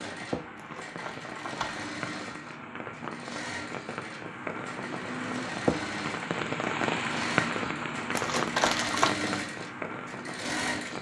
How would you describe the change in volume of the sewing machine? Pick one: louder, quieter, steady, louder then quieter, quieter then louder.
louder.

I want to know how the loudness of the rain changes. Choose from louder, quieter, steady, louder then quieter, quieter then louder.
louder then quieter.